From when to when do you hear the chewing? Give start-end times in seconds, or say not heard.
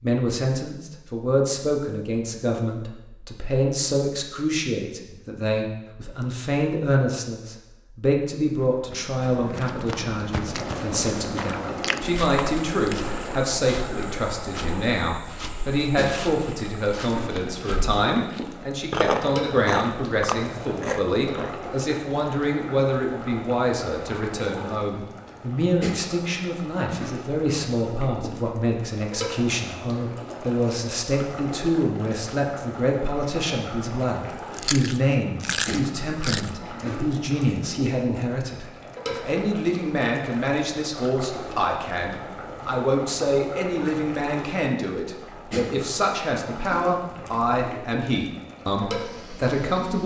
10.6-13.4, 18.9-21.6, 34.5-36.5.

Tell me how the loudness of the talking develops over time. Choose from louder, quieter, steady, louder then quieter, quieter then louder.
steady.